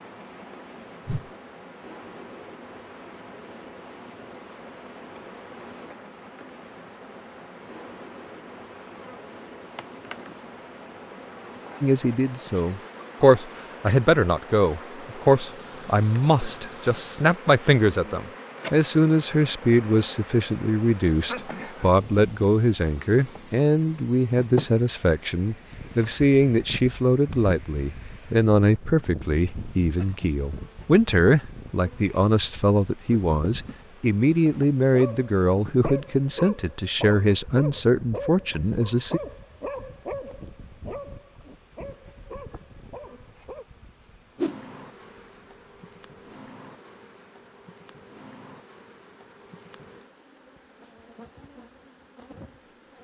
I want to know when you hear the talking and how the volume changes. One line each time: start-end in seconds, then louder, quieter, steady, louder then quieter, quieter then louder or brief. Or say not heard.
11.8-39.2 steady.